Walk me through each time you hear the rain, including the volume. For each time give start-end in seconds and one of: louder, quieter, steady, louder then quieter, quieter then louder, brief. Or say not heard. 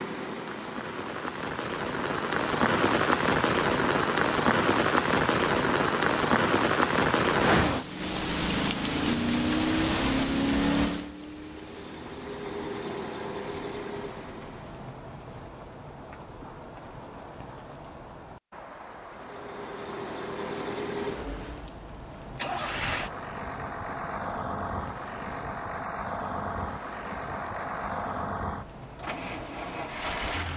0.2-30.5 quieter.